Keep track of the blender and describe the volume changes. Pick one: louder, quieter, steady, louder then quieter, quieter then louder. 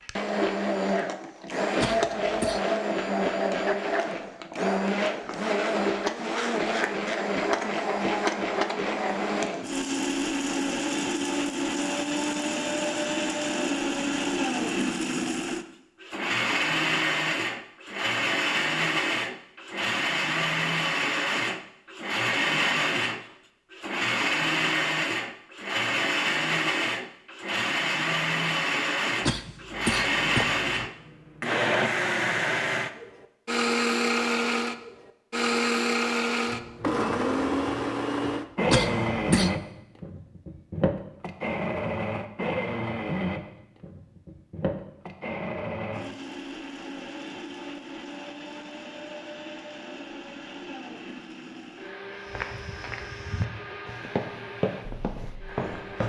quieter.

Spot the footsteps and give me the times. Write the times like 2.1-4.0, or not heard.
52.2-56.0.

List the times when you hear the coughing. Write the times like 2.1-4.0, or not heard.
1.8-2.6, 29.2-30.9, 38.7-39.5.